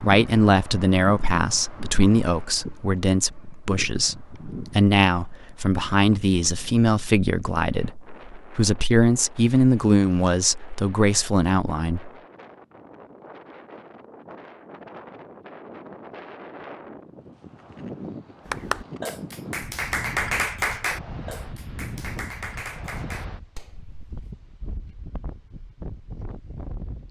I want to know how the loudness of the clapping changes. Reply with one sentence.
The loudness of the clapping goes up, then down.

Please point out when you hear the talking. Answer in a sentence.
You can hear the talking from 0.0 to 12.1 s.